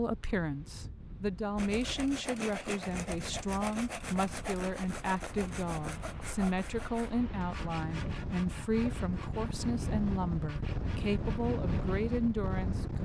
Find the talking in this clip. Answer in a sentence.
You can hear the talking from 0.0 to 13.0 s.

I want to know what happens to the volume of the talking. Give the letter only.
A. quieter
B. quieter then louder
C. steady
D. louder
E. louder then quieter
C.